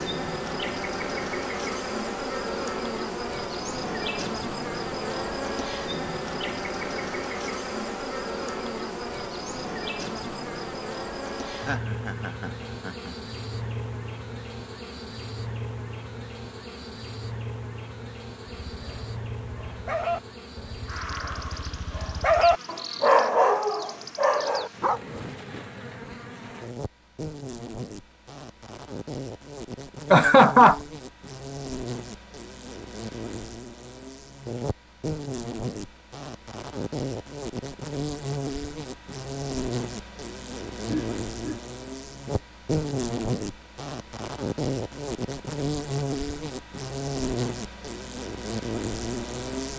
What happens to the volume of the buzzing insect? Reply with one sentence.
The volume of the buzzing insect goes down, then up.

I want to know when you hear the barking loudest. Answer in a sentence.
The loudest moment of the barking is at 23 seconds.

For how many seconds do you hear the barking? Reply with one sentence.
You can hear the barking for 7 seconds altogether.